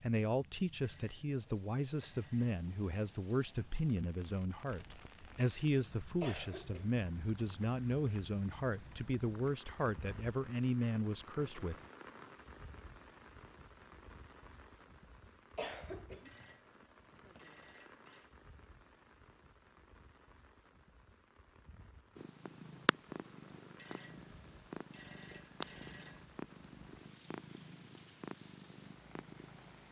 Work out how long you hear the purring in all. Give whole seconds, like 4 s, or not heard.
8 s.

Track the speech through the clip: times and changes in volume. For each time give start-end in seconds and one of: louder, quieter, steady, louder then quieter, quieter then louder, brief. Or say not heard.
0.0-11.8 steady.